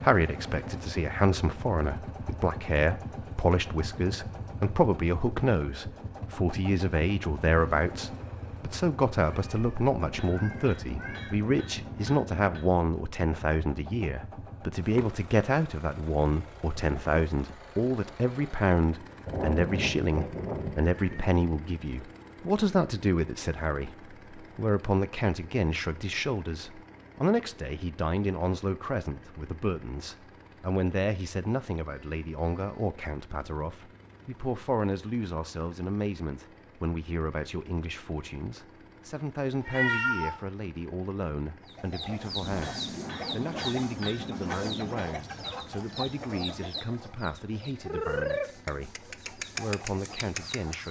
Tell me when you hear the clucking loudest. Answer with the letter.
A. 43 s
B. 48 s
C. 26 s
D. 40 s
B.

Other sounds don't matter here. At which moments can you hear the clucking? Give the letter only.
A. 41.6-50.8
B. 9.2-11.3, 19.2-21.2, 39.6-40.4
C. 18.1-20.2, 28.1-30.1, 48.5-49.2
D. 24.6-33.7
A.